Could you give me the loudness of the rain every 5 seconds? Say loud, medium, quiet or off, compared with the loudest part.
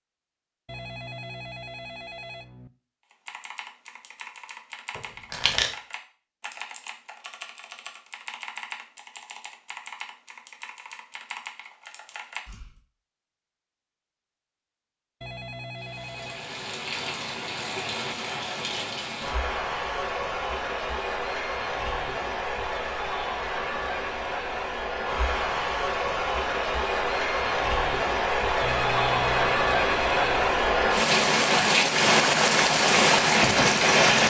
off, off, off, quiet, medium, medium, loud.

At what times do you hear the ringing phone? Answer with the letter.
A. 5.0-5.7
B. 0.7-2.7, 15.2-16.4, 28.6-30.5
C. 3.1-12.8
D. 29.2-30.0
B.